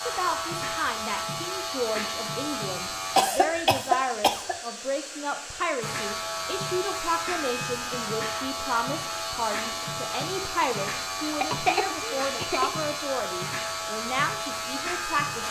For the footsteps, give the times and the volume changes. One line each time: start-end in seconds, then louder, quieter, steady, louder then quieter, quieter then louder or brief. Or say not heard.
not heard.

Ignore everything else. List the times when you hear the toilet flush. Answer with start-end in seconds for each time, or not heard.
not heard.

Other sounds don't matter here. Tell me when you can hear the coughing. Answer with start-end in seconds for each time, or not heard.
3.1-4.5, 11.4-12.7.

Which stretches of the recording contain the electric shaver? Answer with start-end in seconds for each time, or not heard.
0.0-3.2, 5.8-15.4.